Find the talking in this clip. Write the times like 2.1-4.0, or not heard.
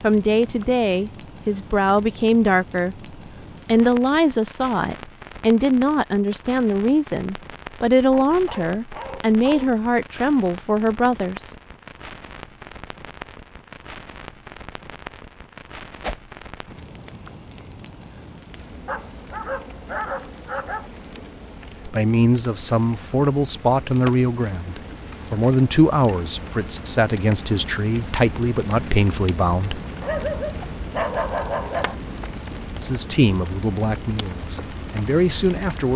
0.0-11.6, 21.9-30.2, 32.8-35.9.